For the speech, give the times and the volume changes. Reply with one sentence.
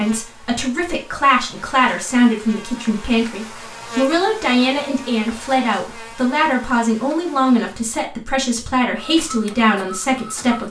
The speech can be heard from 0.0 to 10.6 s, at a steady volume.